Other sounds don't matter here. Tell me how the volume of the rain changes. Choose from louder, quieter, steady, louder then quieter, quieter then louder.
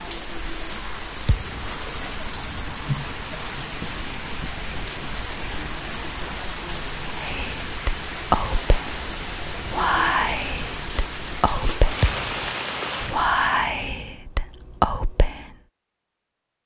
steady.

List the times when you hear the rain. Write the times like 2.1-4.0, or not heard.
0.0-13.2.